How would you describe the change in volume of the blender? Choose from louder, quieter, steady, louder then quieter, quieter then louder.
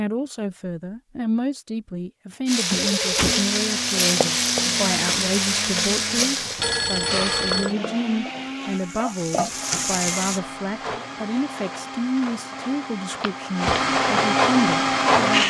louder.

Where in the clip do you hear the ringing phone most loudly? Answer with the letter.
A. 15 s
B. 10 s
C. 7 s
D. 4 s
C.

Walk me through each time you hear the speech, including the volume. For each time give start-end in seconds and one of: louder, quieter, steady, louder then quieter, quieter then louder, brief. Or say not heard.
0.0-15.4 steady.